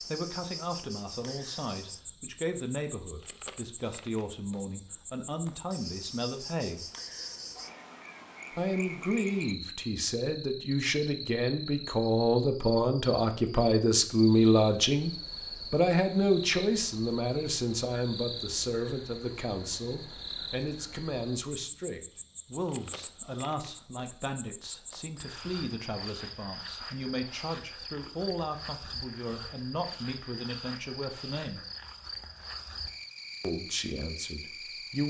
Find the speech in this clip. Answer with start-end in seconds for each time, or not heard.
0.1-6.8, 8.6-15.1, 15.7-31.6, 33.4-35.0.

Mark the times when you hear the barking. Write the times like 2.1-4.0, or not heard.
not heard.